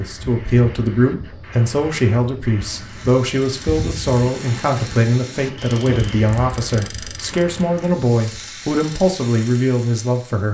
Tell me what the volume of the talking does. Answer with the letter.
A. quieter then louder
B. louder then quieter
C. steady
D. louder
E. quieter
C.